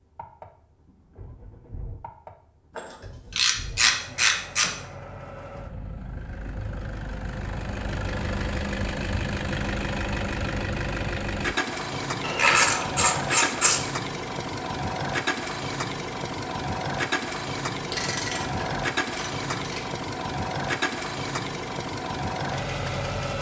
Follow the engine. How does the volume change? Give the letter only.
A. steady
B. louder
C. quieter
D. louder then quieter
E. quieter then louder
B.